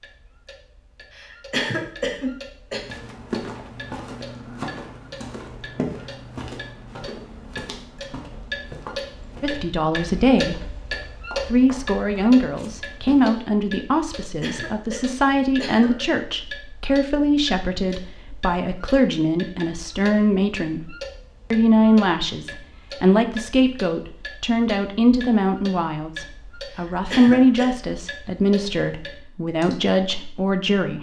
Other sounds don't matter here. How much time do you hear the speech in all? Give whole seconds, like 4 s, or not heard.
21 s.